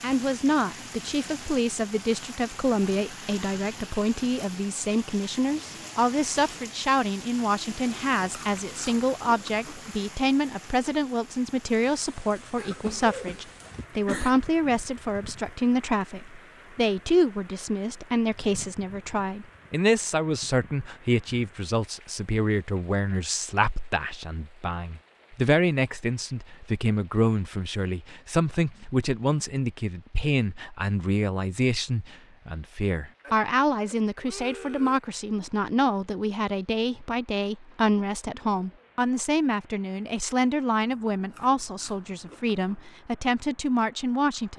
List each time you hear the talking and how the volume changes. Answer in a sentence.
The talking can be heard from 0.0 to 44.5 s, at a steady volume.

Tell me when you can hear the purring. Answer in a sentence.
The purring can't be heard in this clip.